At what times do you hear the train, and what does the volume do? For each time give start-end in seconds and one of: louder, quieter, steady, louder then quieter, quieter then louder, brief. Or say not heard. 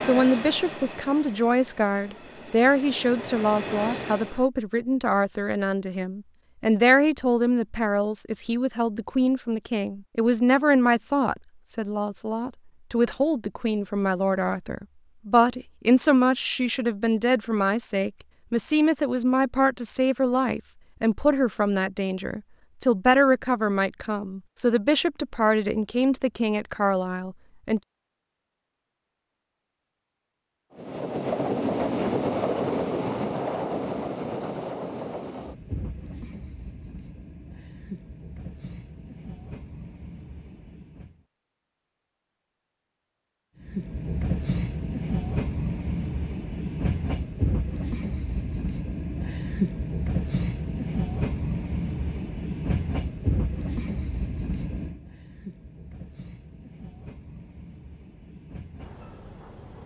0.0-4.5 quieter then louder
30.8-41.2 quieter
43.6-59.8 quieter.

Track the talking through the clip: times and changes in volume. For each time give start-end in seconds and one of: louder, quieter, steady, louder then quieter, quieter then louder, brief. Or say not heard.
0.0-27.8 steady.